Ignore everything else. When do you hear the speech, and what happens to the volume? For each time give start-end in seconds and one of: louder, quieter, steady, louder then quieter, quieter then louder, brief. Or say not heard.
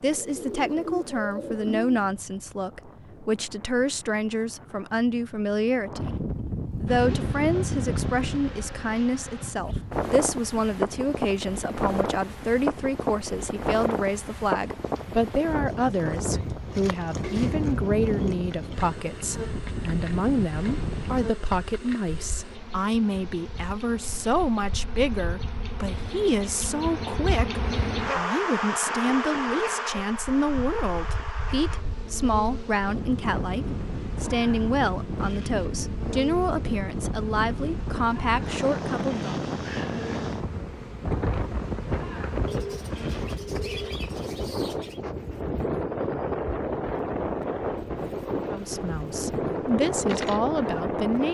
0.0-39.3 steady
48.5-51.3 brief.